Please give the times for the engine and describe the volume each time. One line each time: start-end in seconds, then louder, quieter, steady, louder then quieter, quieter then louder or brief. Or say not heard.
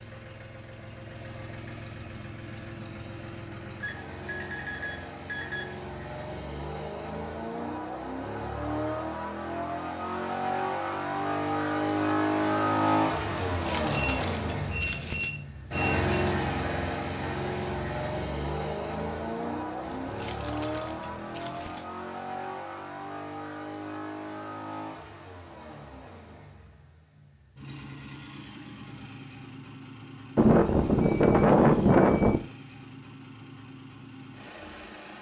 0.0-35.1 louder then quieter.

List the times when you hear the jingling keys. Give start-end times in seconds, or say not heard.
13.2-15.3, 19.8-21.9.